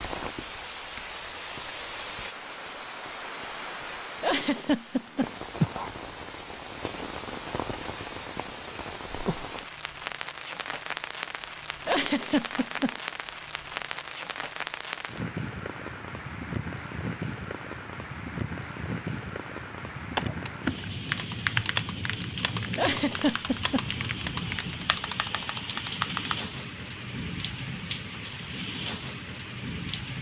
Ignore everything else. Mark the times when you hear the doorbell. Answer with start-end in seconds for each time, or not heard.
not heard.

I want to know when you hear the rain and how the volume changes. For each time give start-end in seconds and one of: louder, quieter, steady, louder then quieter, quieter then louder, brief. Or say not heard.
0.0-30.1 steady.